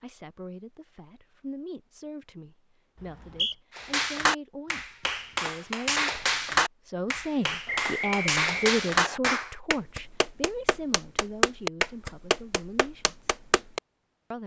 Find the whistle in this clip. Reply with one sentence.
The whistle can be heard from 3.0 to 3.5 s and from 7.7 to 9.2 s.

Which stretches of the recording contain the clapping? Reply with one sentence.
The clapping can be heard from 3.8 to 13.8 s.